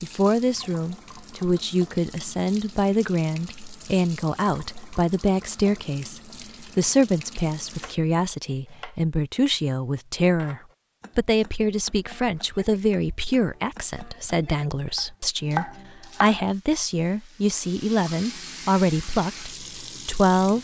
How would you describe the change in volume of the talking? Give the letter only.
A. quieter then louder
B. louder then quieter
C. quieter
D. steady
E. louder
D.